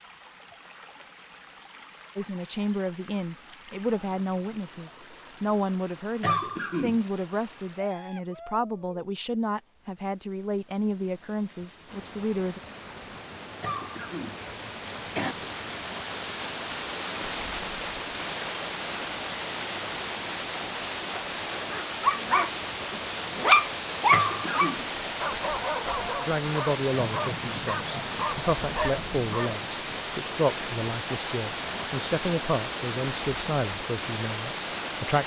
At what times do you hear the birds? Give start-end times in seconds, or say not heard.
not heard.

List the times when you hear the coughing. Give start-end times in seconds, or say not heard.
6.2-7.0, 13.6-15.3, 24.1-24.8.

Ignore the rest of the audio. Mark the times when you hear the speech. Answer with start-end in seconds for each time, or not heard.
2.1-12.6, 26.2-35.2.